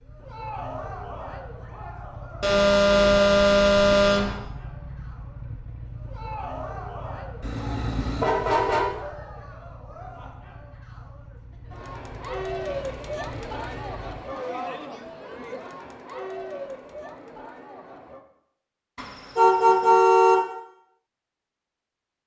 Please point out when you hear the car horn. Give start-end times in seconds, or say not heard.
2.4-4.3, 7.4-8.8, 18.9-20.4.